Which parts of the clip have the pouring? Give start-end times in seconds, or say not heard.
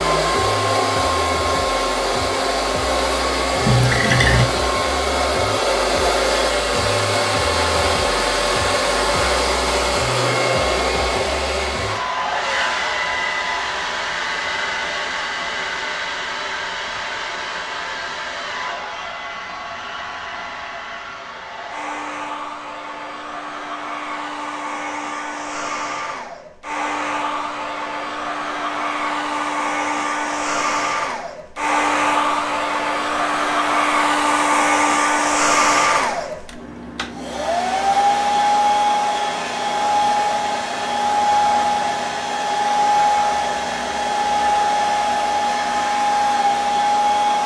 3.6-4.5.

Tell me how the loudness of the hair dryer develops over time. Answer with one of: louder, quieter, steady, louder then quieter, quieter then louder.
quieter then louder.